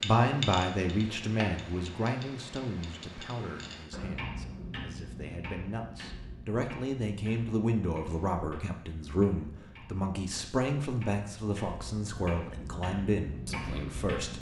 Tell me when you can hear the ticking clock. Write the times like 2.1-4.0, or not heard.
0.0-14.3.